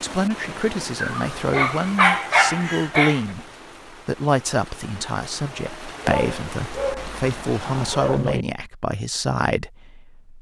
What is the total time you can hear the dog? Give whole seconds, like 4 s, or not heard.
5 s.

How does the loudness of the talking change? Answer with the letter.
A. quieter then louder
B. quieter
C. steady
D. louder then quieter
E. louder
C.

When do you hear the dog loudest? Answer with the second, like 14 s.
2 s.